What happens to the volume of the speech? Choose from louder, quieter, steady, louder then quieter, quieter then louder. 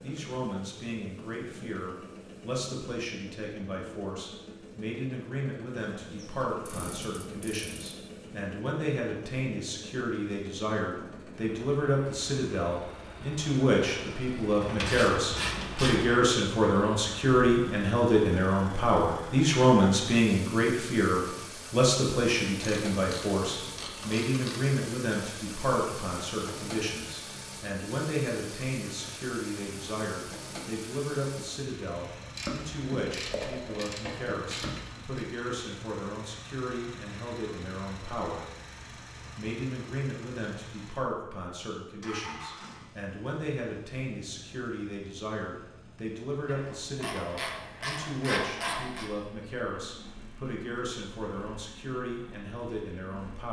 louder then quieter.